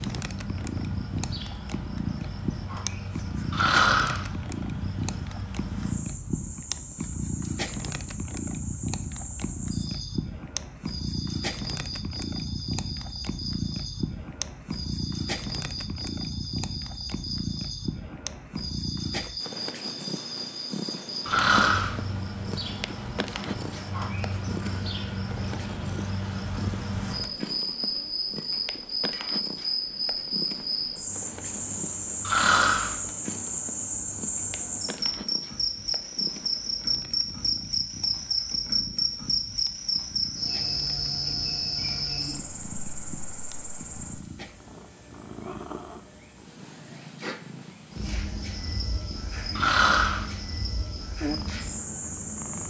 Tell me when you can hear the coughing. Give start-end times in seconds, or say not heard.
not heard.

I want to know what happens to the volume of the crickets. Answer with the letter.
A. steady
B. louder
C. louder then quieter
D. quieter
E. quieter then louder
C.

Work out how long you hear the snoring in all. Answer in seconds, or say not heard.
3 s.